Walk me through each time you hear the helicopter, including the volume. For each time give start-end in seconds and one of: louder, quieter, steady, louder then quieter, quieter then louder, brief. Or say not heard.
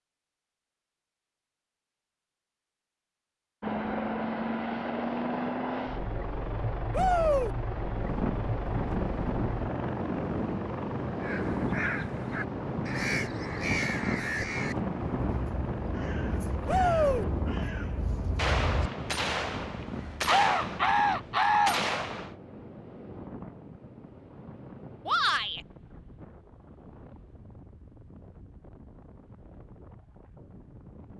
3.6-17.3 quieter.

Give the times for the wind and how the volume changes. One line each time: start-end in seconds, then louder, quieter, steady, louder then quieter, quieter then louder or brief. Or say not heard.
7.9-31.1 quieter.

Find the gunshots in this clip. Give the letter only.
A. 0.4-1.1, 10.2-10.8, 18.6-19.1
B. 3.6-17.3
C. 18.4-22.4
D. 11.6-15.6
C.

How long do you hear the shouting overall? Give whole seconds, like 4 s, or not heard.
2 s.